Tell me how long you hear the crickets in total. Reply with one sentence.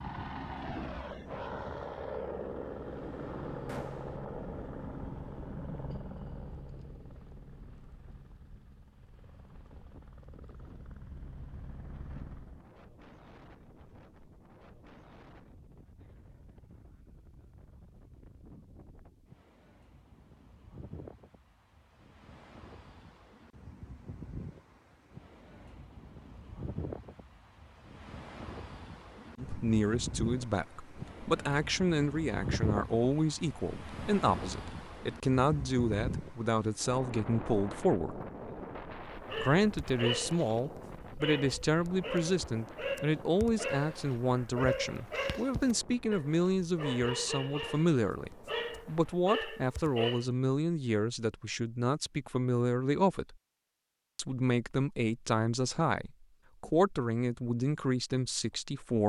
You can't hear the crickets here.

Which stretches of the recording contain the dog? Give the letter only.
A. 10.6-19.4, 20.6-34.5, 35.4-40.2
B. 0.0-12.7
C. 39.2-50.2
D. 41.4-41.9
C.